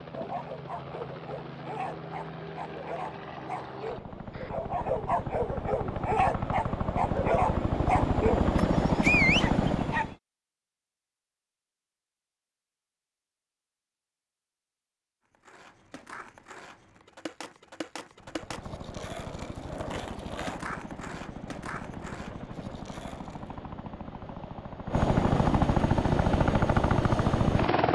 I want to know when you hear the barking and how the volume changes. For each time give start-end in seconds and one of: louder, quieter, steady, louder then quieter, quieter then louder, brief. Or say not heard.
0.1-10.2 louder.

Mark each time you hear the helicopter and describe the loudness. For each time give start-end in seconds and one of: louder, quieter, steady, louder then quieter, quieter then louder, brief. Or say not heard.
0.0-10.2 louder
18.1-27.9 louder.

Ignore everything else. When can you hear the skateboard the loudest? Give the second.
20 s.